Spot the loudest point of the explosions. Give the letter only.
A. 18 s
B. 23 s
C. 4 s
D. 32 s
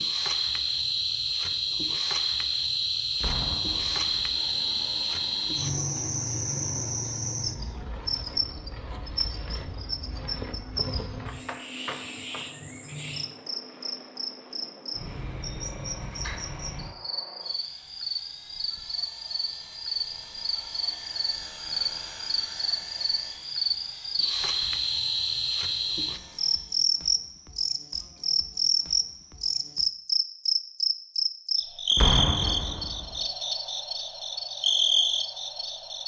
D.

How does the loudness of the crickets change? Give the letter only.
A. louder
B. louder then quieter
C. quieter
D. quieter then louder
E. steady
D.